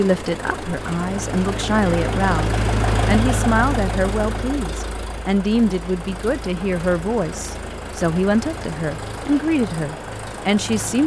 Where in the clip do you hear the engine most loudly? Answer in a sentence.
The volume of the engine peaks at 3 seconds.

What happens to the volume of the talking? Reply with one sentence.
The volume of the talking stays about the same.